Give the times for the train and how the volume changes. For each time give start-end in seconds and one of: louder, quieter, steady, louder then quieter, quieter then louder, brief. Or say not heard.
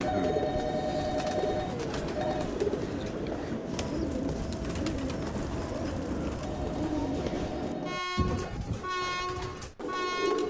0.0-10.4 steady.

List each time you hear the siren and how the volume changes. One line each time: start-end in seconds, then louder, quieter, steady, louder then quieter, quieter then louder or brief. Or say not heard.
not heard.